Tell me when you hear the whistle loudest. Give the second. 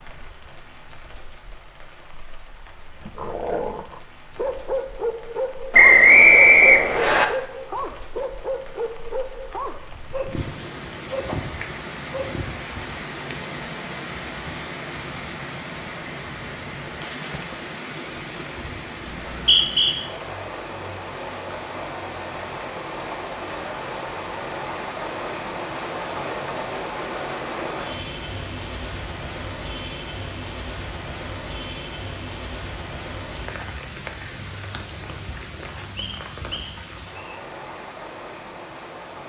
6 s.